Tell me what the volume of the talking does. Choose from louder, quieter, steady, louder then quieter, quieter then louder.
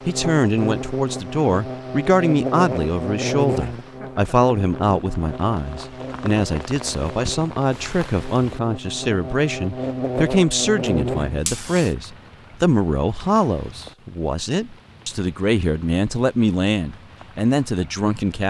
steady.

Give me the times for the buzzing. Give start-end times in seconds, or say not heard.
0.0-11.9.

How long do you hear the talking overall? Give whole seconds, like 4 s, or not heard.
18 s.